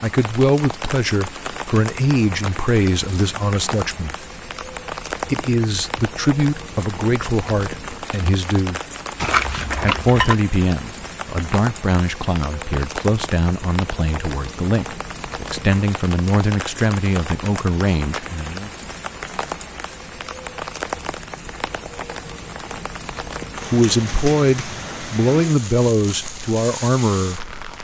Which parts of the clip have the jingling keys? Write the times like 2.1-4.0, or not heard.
9.2-10.3.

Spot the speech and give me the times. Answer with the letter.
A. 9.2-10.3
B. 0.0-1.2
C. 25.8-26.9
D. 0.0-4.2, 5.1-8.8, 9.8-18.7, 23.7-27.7
D.